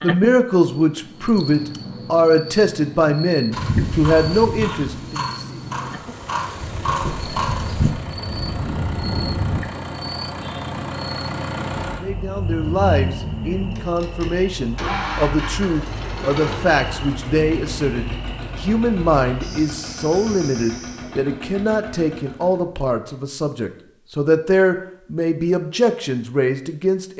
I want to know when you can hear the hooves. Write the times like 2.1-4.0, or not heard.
3.5-9.6.